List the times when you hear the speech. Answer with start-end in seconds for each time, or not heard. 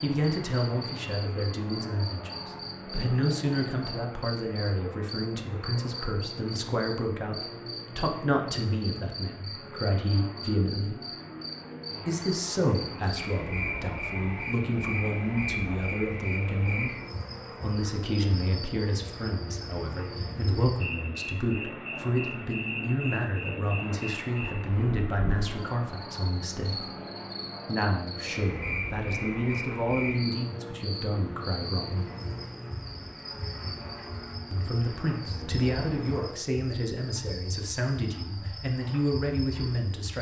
0.0-11.0, 12.1-16.9, 17.6-26.9, 27.6-32.0, 34.5-40.1.